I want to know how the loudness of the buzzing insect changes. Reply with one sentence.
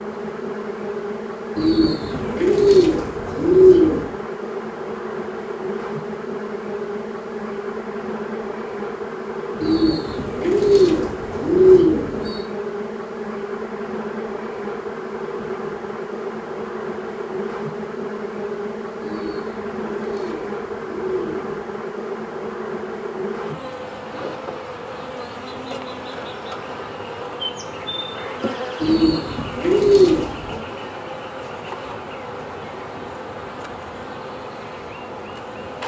The loudness of the buzzing insect stays about the same.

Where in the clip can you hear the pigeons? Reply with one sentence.
The pigeons can be heard from 1.6 to 4.0 s, from 9.6 to 12.4 s, from 19.0 to 21.4 s and from 28.8 to 30.6 s.